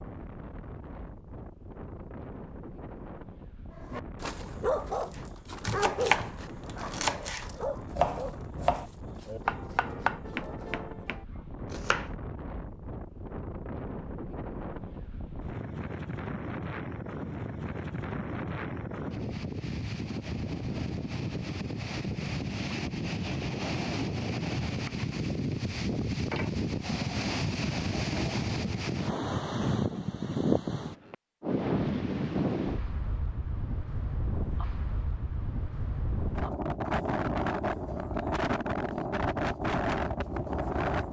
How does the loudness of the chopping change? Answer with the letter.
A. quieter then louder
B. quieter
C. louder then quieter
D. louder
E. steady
B.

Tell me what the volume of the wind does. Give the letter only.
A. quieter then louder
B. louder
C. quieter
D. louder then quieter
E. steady
B.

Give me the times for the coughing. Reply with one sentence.
You can't hear the coughing here.